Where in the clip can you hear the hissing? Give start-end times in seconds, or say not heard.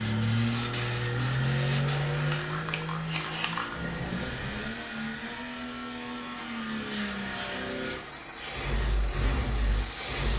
0.0-4.8, 6.7-10.3.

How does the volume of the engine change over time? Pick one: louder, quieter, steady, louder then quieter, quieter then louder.
quieter.